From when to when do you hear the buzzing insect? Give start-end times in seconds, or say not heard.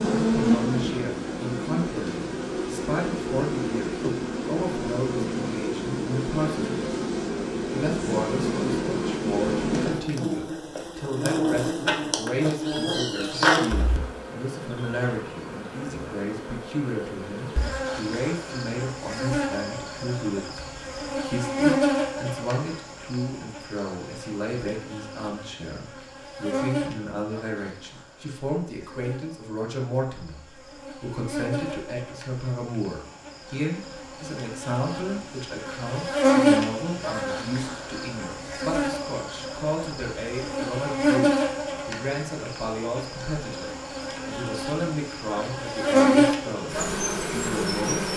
0.0-48.1.